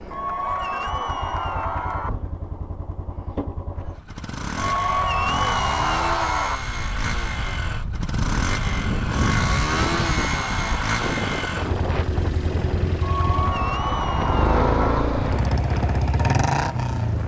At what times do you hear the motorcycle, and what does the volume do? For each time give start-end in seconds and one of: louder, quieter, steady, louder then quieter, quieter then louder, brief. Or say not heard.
0.0-17.2 louder.